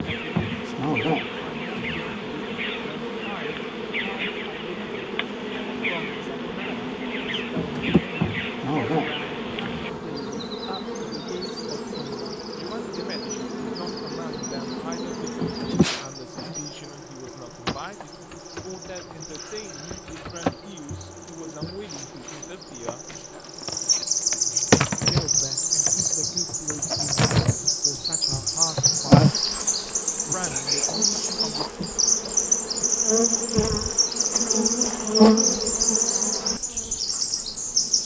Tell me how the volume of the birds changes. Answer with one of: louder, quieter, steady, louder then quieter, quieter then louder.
quieter then louder.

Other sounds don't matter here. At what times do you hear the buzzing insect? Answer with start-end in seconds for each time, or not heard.
0.0-38.0.